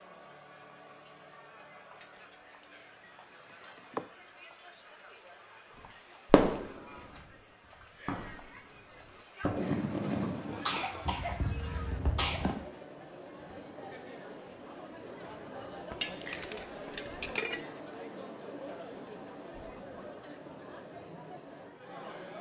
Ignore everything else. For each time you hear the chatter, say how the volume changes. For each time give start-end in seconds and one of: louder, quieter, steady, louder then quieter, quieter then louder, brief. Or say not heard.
0.0-22.3 louder.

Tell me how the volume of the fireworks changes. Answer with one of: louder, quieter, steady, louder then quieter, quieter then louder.
louder then quieter.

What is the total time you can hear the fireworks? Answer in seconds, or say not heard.
6 s.